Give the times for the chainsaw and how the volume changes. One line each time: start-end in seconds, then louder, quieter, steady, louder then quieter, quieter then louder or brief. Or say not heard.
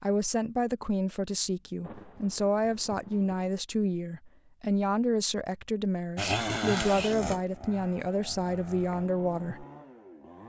6.2-10.4 quieter.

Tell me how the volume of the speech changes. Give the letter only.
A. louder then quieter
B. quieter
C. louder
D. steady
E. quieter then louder
D.